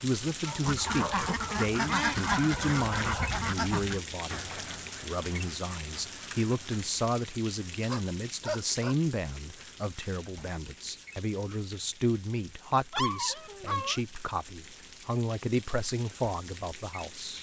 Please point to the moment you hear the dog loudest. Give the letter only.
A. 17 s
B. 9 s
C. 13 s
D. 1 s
C.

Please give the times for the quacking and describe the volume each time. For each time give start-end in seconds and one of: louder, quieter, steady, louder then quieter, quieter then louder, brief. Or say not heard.
0.6-6.8 quieter.